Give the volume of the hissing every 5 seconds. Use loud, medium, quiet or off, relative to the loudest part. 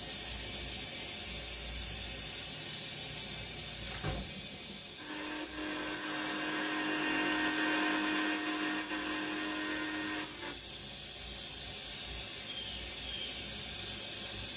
loud, medium, loud.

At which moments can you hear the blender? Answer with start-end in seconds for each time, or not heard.
5.0-10.6.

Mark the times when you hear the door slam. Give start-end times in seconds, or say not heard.
3.8-4.8.